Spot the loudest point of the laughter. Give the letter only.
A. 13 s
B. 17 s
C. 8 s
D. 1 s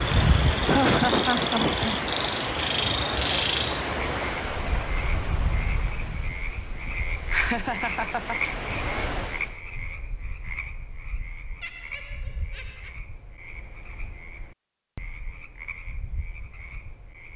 D.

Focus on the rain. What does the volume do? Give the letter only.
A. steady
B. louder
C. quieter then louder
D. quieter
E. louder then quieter
C.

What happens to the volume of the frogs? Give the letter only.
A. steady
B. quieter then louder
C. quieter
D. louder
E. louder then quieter
C.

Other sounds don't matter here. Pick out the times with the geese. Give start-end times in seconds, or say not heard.
not heard.